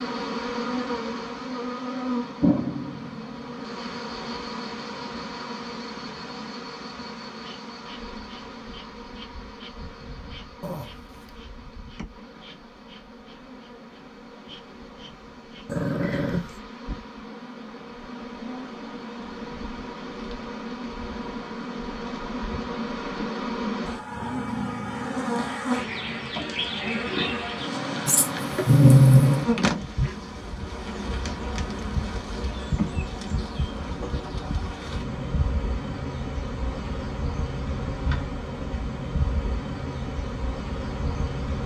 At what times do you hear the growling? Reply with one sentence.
The growling can be heard from 10.6 to 11.3 s, from 15.7 to 16.6 s and from 28.1 to 29.4 s.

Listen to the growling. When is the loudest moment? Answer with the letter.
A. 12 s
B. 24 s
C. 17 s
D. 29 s
D.